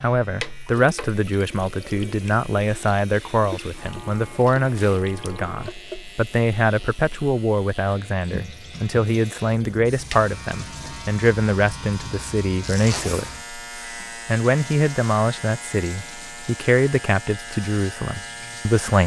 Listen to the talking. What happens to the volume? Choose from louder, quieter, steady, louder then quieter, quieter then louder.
steady.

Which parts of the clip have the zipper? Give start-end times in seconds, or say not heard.
12.6-13.3.